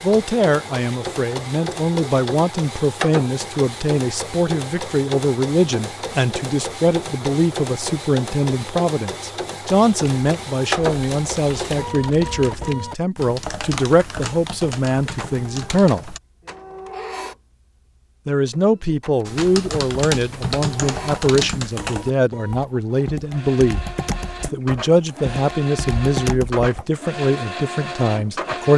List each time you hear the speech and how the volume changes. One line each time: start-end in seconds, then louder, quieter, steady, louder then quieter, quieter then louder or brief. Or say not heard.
0.0-16.1 steady
18.2-28.7 steady.